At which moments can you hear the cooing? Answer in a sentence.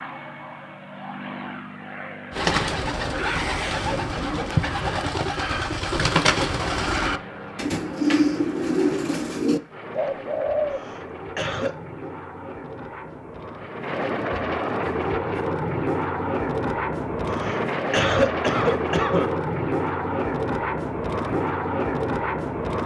The cooing can be heard from 2.3 to 10.8 s.